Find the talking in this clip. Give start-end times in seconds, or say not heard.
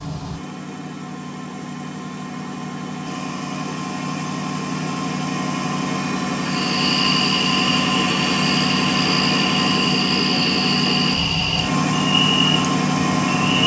not heard.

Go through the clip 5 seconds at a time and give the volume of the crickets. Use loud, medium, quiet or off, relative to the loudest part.
off, loud, loud.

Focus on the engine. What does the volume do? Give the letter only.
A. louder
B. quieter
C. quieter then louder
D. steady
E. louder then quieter
A.